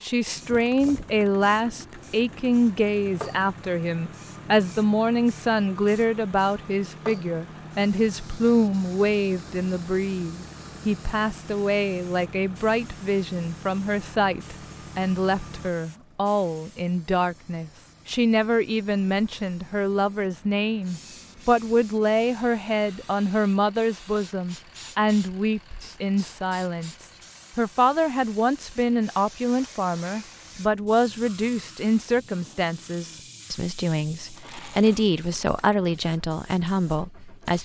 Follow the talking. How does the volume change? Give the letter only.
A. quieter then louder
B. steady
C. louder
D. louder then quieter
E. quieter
B.